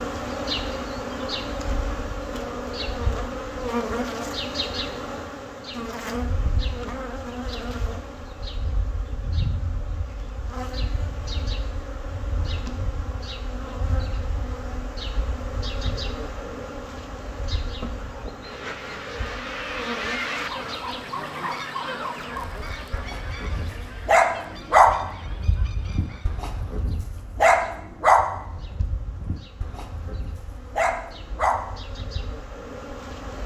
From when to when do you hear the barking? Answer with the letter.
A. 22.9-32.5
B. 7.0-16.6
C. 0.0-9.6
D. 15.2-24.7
A.